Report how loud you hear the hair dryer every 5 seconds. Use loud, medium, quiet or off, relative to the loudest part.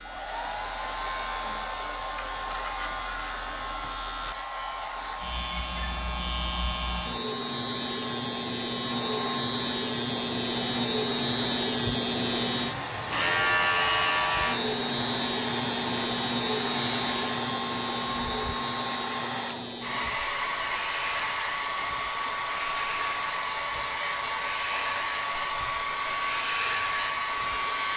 medium, medium, medium, loud, loud, loud.